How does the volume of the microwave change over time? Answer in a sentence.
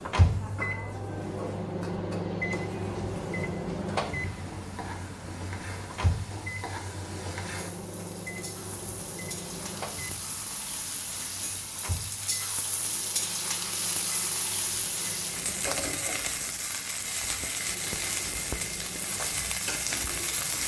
The volume of the microwave goes down.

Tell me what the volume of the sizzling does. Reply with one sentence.
The volume of the sizzling goes up.